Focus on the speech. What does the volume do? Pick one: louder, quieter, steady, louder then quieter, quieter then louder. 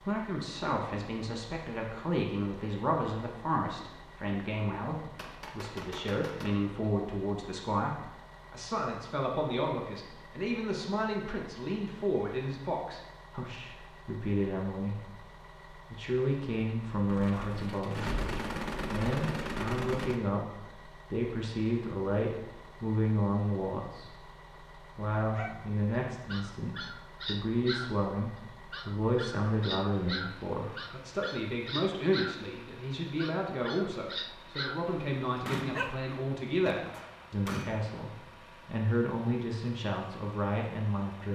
steady.